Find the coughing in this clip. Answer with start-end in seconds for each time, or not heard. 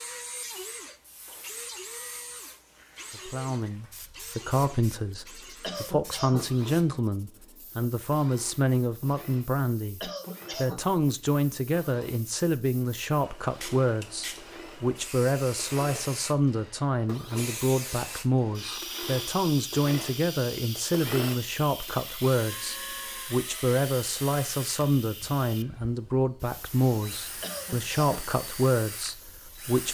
5.6-6.5, 10.0-10.8, 27.4-28.3.